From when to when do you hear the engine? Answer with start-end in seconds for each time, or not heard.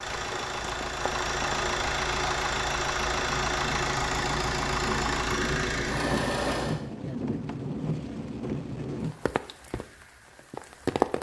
0.0-6.8.